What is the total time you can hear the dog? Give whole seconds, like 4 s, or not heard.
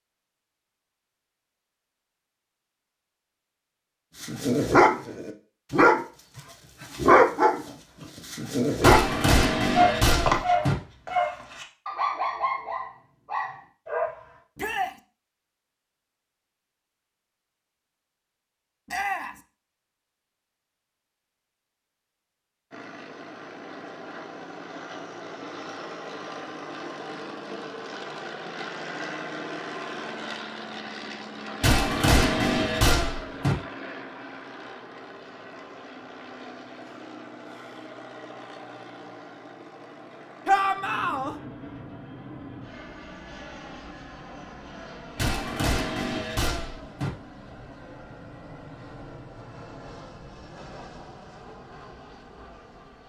9 s.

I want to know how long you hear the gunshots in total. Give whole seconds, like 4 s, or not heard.
6 s.